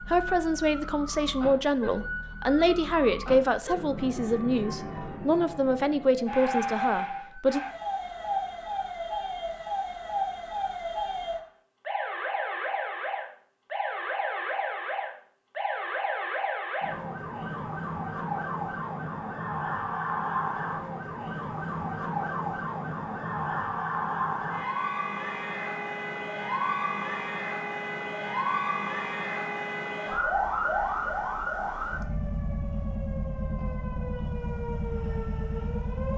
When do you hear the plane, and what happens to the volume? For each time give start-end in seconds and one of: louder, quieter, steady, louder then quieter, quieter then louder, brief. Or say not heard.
not heard.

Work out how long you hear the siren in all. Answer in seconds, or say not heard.
36 s.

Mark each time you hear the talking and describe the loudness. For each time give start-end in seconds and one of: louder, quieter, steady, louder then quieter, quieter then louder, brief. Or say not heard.
0.0-7.6 steady.